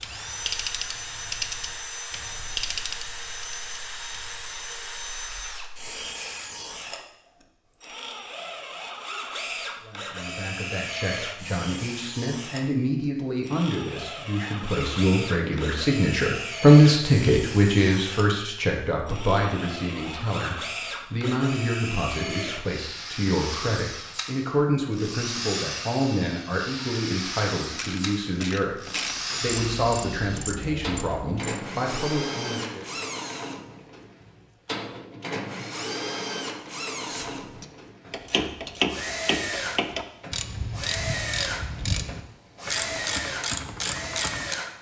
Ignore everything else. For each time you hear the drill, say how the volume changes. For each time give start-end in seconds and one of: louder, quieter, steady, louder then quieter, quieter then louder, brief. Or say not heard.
0.0-44.7 steady.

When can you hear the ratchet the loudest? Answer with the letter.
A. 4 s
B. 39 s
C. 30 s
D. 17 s
B.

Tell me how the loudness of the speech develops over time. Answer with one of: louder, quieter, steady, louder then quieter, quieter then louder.
louder then quieter.